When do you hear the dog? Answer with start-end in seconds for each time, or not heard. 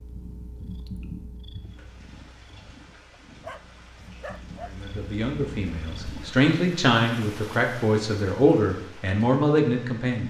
3.4-4.8.